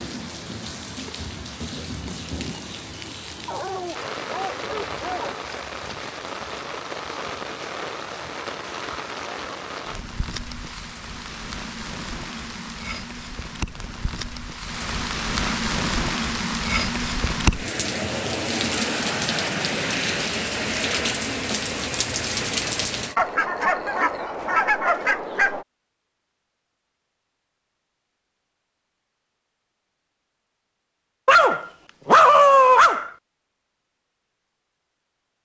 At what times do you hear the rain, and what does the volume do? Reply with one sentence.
You can hear the rain from 0.0 to 23.1 s, getting louder.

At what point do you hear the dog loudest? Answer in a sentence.
The volume of the dog peaks at 32 seconds.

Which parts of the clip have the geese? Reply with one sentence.
The geese can be heard from 23.1 to 25.6 s.